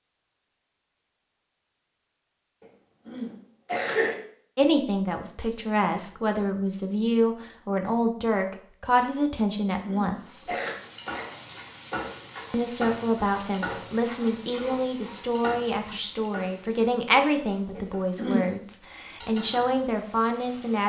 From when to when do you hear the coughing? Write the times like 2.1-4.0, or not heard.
3.0-4.2, 9.8-10.8, 17.8-18.5.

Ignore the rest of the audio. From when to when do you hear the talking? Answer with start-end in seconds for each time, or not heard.
4.5-10.4, 12.5-20.8.